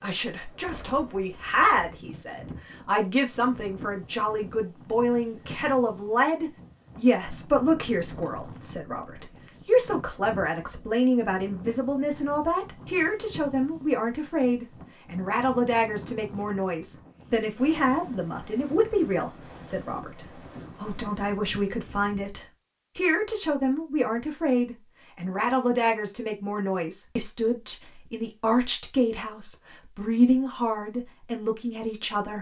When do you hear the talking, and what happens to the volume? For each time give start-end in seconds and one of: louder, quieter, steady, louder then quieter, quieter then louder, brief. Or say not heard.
0.0-32.3 steady.